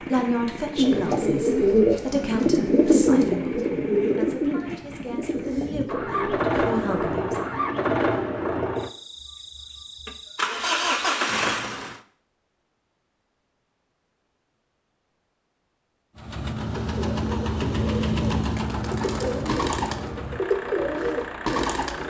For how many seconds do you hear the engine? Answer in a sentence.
The engine can be heard for 18 seconds in total.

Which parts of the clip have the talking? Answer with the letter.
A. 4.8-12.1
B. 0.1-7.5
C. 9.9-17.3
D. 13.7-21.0
B.